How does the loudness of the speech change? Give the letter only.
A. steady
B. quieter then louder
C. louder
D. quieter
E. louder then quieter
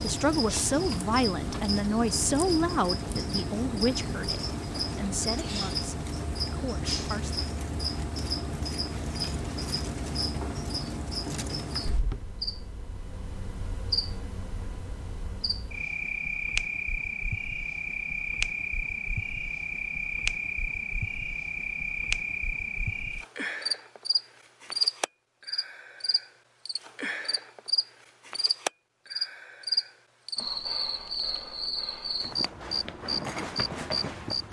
D.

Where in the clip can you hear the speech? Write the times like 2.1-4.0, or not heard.
0.0-7.5.